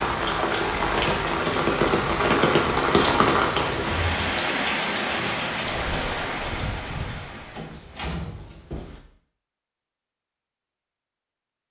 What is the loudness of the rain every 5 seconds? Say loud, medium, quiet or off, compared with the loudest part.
loud, medium, off.